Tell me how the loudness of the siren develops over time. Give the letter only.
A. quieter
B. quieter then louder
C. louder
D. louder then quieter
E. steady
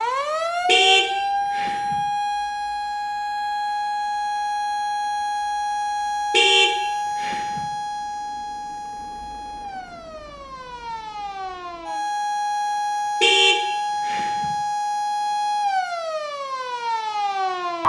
B.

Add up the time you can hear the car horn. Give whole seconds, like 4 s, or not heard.
4 s.